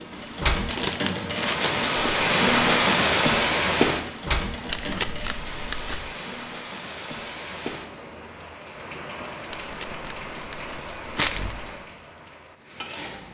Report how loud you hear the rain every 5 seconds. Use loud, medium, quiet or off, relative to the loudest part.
loud, quiet, quiet.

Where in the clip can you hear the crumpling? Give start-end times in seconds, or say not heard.
0.7-1.9, 4.7-6.1, 9.5-11.8.